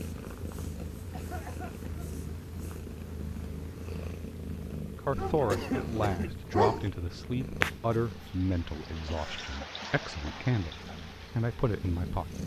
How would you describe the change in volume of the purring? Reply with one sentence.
The volume of the purring goes up, then down.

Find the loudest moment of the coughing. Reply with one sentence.
The volume of the coughing peaks at 6 seconds.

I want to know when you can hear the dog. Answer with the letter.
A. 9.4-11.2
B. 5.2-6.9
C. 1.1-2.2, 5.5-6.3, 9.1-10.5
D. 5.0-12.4
B.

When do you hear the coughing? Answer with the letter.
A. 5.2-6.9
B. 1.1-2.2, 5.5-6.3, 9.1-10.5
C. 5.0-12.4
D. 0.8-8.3
B.